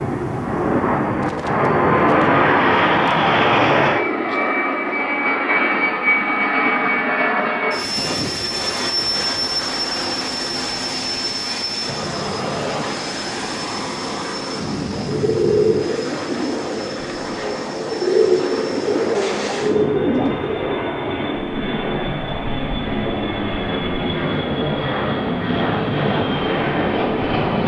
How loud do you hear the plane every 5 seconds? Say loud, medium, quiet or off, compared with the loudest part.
loud, loud, medium, medium, medium, loud.